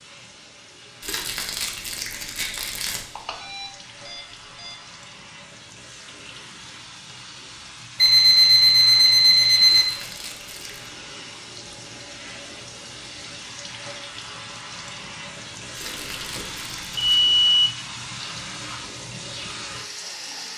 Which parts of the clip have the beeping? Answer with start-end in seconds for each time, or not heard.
3.1-4.8, 8.0-9.8, 15.8-17.7.